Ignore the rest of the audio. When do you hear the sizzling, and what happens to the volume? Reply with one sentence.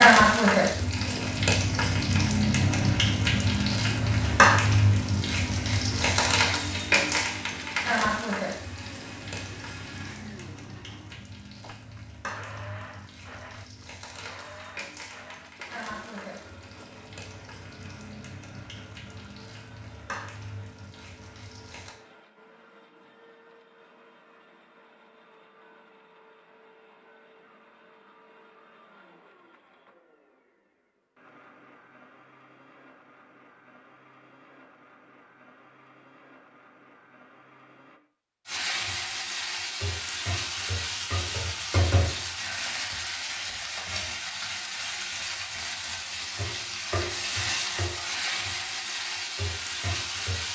The sizzling can be heard from 0.0 to 21.9 s, getting quieter; and from 38.5 to 50.5 s, at a steady volume.